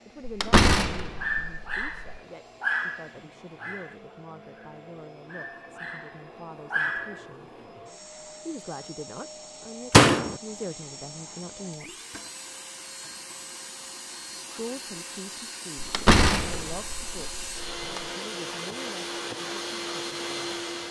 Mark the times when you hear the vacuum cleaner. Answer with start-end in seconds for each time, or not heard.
0.0-20.8.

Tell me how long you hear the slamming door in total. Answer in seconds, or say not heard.
5 s.